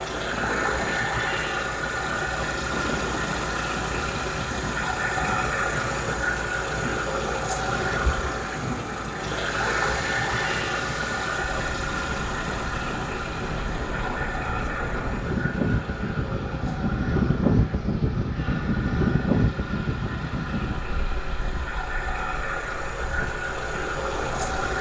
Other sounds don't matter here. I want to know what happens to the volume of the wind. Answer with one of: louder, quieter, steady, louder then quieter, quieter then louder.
louder then quieter.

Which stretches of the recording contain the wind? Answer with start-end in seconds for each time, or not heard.
0.0-24.6.